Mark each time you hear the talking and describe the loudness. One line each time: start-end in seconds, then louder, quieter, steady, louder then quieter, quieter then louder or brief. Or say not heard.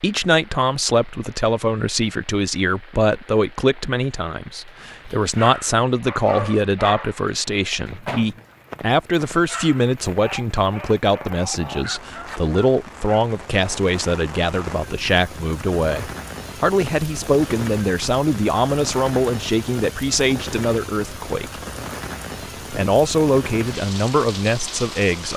0.0-21.6 steady
22.7-25.3 brief.